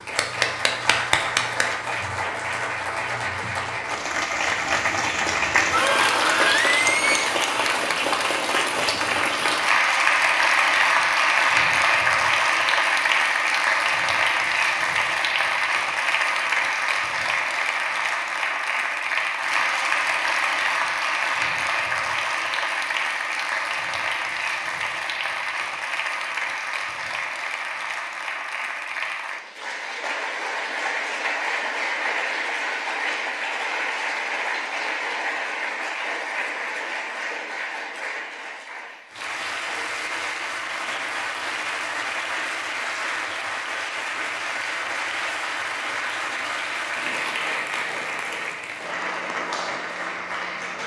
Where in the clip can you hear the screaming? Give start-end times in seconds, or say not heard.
5.7-7.3.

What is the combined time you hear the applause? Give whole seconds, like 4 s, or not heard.
51 s.